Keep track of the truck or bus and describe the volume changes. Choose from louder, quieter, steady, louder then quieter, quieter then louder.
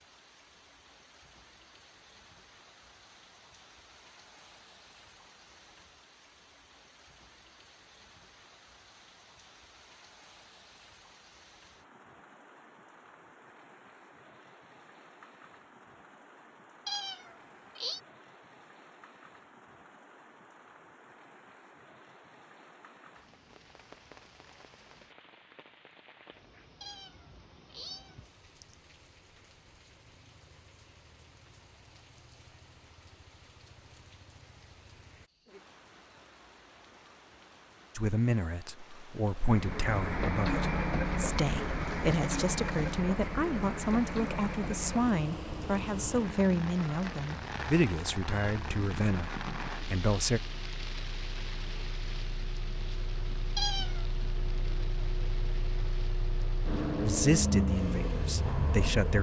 quieter then louder.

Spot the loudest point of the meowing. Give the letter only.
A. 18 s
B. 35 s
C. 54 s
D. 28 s
C.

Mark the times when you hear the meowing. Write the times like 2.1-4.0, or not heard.
16.9-18.0, 26.8-28.8, 53.5-54.0.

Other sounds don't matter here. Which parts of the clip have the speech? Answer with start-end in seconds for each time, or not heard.
38.0-50.4, 57.0-59.1.